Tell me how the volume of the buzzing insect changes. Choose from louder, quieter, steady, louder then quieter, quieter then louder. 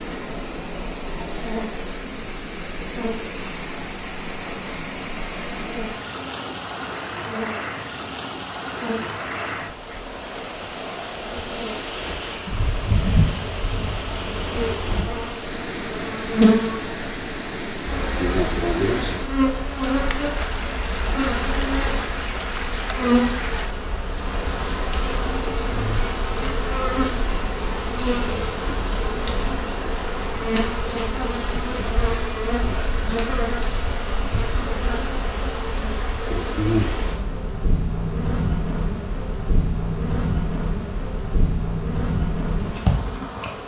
louder.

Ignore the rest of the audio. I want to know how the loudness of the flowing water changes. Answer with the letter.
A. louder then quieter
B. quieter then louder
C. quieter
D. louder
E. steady
E.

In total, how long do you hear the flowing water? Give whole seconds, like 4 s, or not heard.
24 s.